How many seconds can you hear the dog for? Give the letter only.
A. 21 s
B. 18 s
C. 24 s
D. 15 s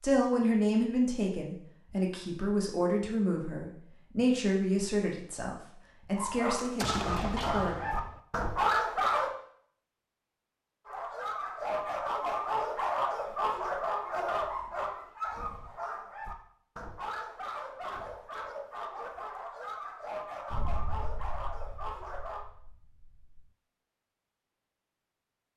D.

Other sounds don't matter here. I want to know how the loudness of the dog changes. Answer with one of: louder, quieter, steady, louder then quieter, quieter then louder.
quieter.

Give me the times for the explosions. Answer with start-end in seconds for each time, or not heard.
6.6-8.2, 20.5-23.4.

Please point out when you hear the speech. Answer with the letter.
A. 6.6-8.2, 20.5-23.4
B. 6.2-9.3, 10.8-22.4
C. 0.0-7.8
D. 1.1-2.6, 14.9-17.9
C.